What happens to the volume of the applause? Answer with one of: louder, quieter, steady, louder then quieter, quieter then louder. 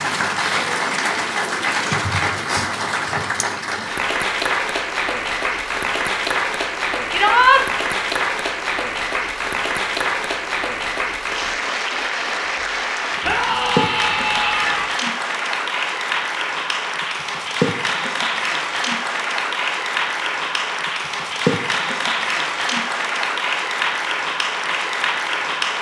steady.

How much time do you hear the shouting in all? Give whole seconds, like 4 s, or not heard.
2 s.